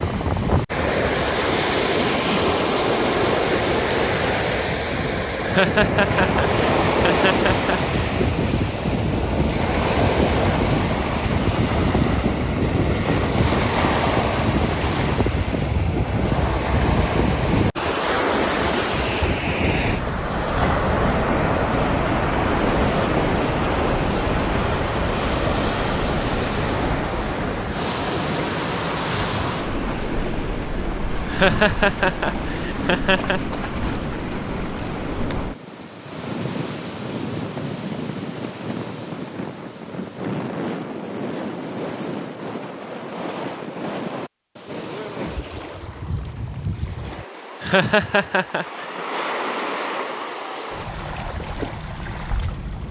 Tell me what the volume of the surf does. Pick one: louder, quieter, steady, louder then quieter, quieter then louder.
quieter.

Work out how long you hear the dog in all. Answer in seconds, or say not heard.
not heard.